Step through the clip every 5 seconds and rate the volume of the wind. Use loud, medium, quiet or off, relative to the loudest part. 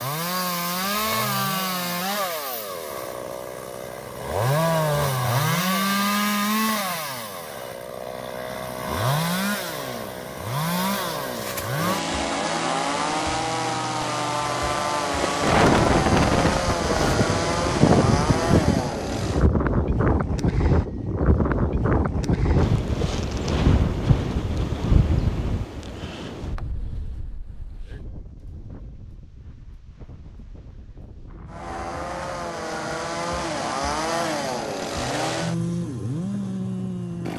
off, off, off, loud, loud, quiet, quiet, quiet.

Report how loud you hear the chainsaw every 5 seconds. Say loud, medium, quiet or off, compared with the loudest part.
loud, loud, loud, loud, off, off, loud, loud.